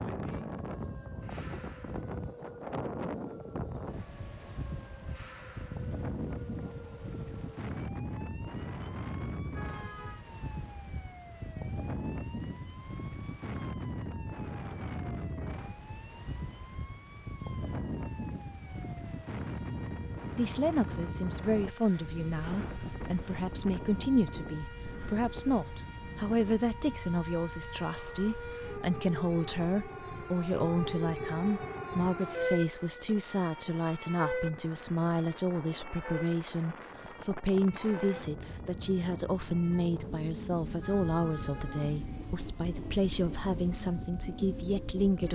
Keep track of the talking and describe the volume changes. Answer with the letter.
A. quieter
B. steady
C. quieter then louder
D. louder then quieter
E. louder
B.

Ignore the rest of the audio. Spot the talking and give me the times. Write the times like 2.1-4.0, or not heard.
20.4-45.3.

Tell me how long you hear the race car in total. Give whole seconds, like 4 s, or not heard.
not heard.